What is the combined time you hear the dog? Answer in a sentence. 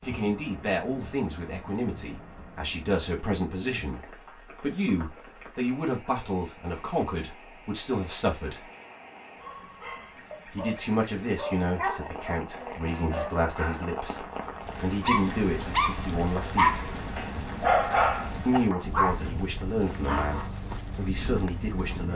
The dog can be heard for 10 seconds in total.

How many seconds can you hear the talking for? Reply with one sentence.
You can hear the talking for 18 seconds altogether.